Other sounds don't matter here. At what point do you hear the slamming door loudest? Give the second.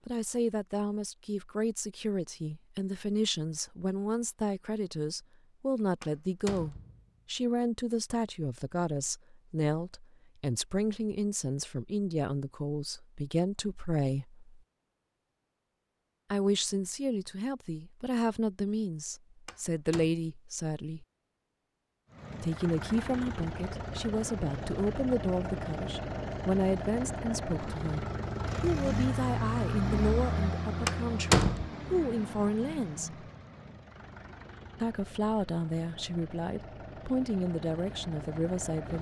31 s.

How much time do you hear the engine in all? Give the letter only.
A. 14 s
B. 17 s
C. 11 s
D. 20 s
B.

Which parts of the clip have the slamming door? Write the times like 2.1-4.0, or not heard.
6.0-7.0, 19.4-20.1, 30.9-31.7.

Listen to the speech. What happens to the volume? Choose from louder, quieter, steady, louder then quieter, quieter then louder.
steady.